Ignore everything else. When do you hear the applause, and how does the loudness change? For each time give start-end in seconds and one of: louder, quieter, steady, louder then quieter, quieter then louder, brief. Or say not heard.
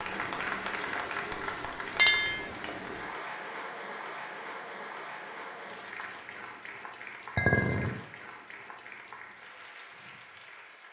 0.0-10.8 quieter.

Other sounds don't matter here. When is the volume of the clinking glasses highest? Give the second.
2 s.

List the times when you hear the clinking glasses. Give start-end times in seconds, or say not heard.
1.9-2.5, 7.3-8.0.